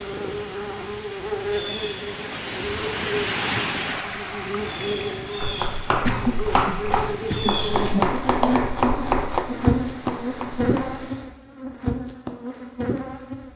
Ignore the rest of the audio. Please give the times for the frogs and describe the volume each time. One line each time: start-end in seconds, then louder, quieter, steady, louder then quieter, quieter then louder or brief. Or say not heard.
not heard.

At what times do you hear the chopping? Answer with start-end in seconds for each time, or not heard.
5.4-11.0.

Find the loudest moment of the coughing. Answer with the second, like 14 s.
6 s.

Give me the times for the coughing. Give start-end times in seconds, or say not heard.
6.0-7.7.